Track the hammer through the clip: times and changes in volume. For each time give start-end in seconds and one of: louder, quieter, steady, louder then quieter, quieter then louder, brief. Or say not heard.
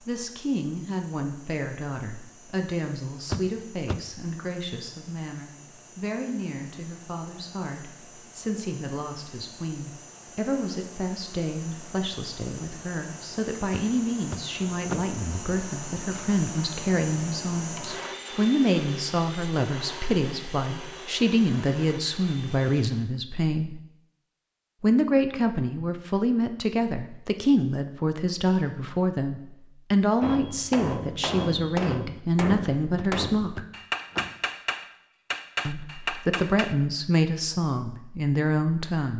30.2-36.8 steady.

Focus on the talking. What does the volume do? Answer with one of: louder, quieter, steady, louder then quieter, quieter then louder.
louder.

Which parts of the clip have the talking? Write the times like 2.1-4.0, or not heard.
0.0-23.8, 24.8-33.6, 35.6-39.1.